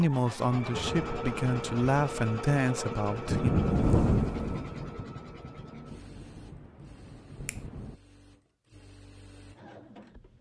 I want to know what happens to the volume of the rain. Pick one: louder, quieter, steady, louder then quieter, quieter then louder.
louder then quieter.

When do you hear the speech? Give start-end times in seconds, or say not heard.
0.0-3.5.